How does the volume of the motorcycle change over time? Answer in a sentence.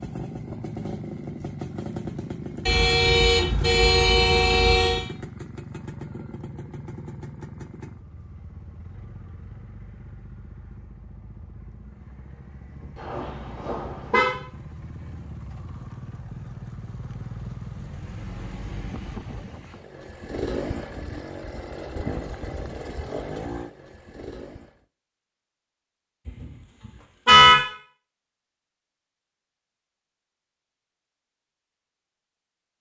The loudness of the motorcycle goes down, then up.